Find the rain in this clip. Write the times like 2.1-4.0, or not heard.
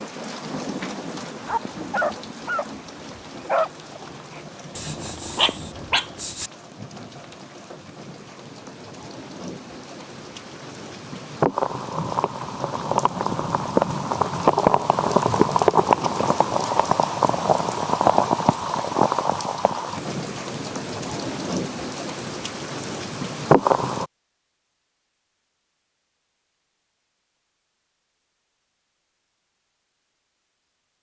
0.0-24.1.